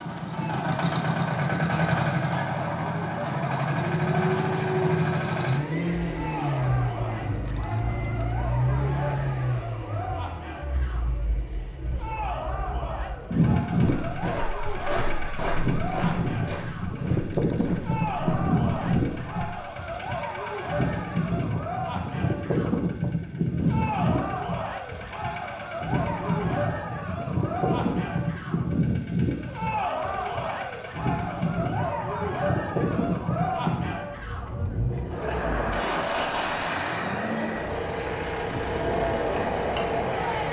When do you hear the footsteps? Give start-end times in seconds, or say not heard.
13.7-19.6.